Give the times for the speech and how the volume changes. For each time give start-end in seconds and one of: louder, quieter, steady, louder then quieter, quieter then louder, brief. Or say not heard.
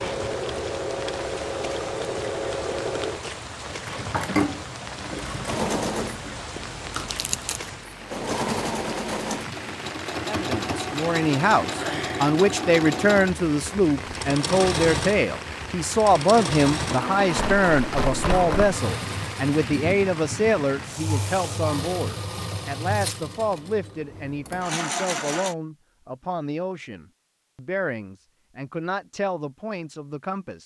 10.2-30.6 quieter.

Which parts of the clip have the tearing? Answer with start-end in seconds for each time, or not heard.
7.1-7.6, 17.3-18.8, 22.9-23.6.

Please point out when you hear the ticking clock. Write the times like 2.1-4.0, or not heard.
not heard.